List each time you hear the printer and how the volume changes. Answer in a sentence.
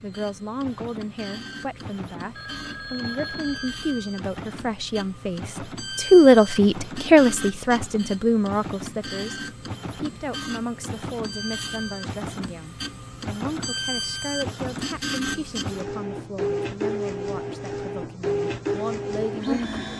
The printer can be heard from 0.0 to 19.9 s, getting louder.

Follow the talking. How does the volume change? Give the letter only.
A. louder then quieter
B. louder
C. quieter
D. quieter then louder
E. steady
A.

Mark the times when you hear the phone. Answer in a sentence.
You can hear the phone from 2.4 to 3.8 s.